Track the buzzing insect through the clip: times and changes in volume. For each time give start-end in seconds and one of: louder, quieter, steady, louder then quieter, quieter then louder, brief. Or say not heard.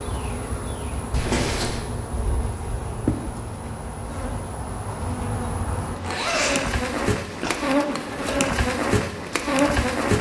0.0-10.1 louder.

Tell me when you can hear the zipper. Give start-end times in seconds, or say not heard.
1.1-1.8, 6.0-7.5.